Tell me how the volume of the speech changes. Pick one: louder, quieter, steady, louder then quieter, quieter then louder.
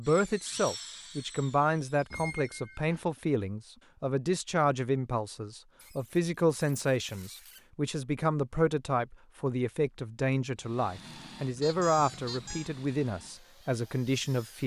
steady.